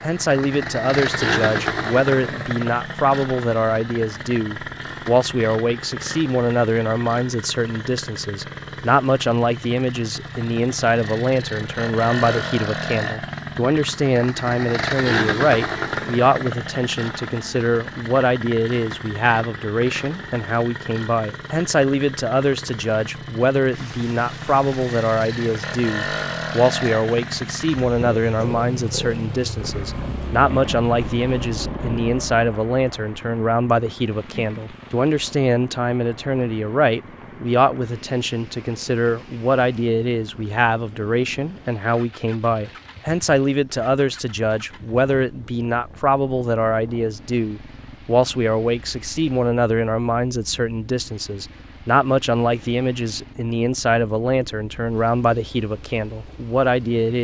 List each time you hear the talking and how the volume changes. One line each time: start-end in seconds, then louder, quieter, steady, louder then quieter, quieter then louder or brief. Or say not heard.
0.0-57.1 steady.